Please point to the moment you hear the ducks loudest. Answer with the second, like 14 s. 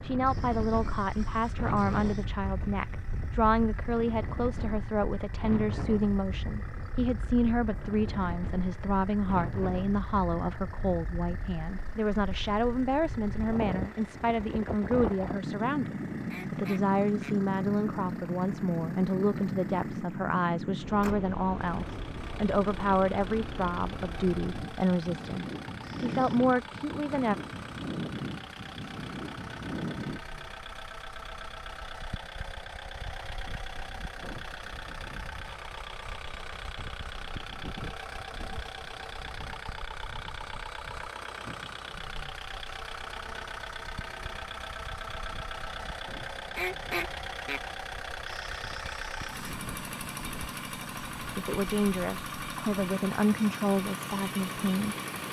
47 s.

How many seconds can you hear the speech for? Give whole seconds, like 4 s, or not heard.
31 s.